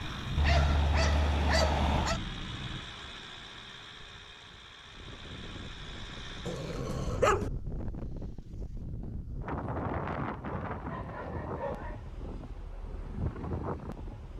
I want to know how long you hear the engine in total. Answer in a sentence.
The engine can be heard for 7 seconds in total.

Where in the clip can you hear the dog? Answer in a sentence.
You can hear the dog from 0.3 to 2.2 s, from 6.5 to 7.5 s and from 10.7 to 12.0 s.